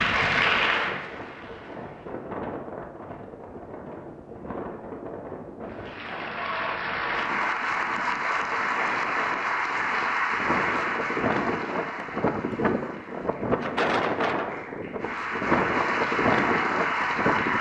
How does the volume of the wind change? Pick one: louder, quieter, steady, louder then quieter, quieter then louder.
louder.